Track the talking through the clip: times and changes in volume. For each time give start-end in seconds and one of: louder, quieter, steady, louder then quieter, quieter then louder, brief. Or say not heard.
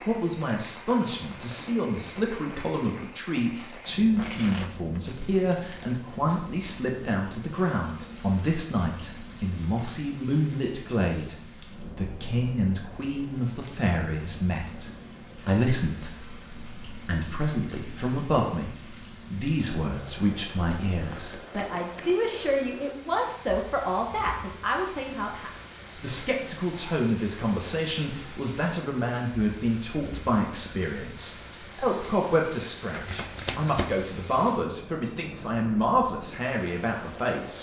0.0-37.5 steady.